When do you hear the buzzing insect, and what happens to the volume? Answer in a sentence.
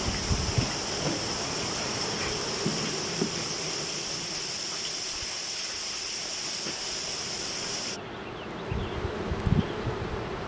You can hear the buzzing insect from 0.0 to 10.4 s, getting quieter then louder.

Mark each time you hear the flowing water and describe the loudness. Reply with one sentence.
The flowing water can be heard from 0.0 to 8.0 s, at a steady volume.